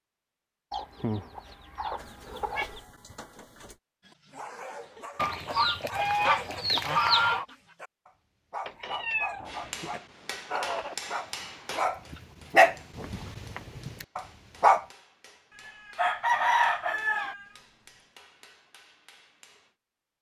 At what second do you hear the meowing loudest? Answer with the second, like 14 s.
9 s.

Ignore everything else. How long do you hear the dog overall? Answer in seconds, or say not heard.
11 s.